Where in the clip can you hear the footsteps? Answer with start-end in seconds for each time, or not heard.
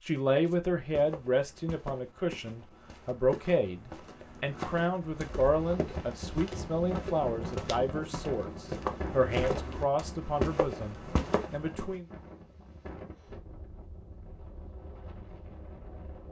0.5-11.9.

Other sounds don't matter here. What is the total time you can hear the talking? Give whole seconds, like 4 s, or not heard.
12 s.